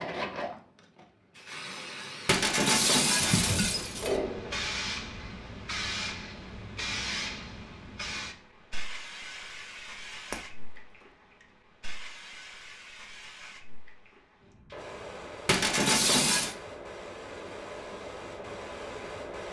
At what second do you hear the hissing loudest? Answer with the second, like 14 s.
4 s.